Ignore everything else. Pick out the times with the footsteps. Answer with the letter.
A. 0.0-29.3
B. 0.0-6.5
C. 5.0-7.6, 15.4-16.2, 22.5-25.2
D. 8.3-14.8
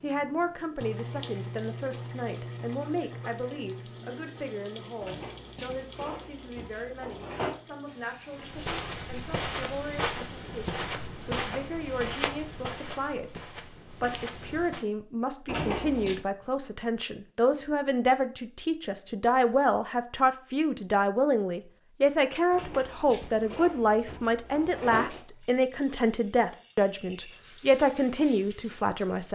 D.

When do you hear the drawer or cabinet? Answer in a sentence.
You can hear the drawer or cabinet from 5.0 to 7.6 s, from 15.4 to 16.2 s and from 22.5 to 25.2 s.